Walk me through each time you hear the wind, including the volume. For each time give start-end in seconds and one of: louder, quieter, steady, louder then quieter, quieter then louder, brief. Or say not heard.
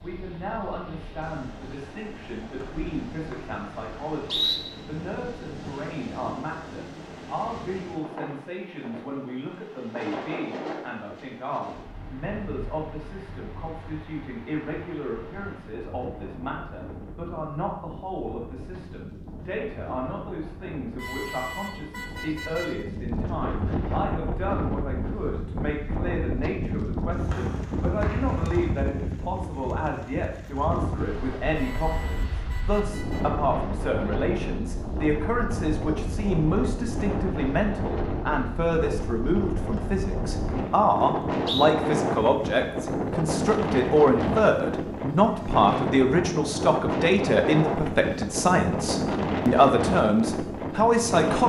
0.0-51.4 louder.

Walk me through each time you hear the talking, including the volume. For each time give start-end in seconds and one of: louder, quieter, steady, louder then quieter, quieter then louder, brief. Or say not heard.
0.0-51.4 louder.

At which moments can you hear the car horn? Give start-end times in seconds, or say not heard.
20.9-22.9, 31.6-33.2.